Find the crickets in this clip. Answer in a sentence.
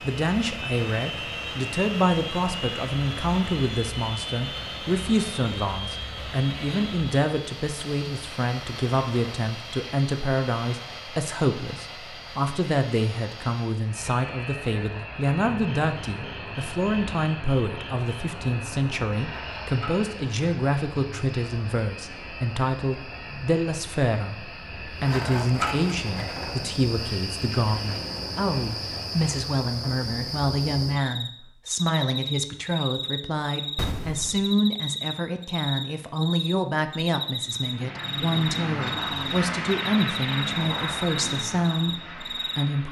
You can hear the crickets from 15.4 to 42.8 s.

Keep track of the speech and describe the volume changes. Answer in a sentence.
The volume of the speech stays about the same.